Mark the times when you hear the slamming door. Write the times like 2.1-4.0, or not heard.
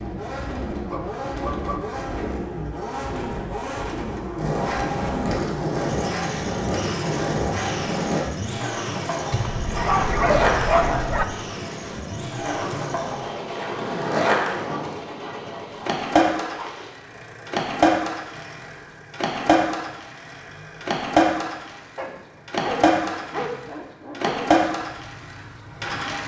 not heard.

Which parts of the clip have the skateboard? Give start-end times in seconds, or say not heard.
4.3-26.2.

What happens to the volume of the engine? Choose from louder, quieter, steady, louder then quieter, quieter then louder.
quieter.